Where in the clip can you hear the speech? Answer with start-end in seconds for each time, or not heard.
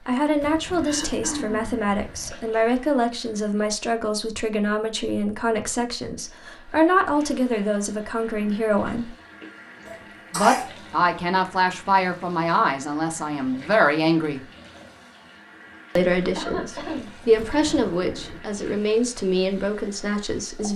0.1-9.1, 10.3-14.4, 15.9-20.7.